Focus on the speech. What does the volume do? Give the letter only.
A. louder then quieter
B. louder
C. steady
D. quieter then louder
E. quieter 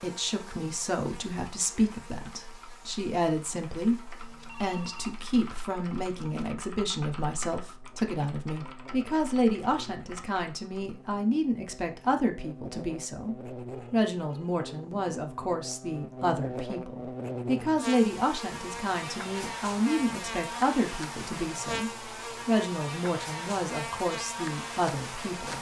C.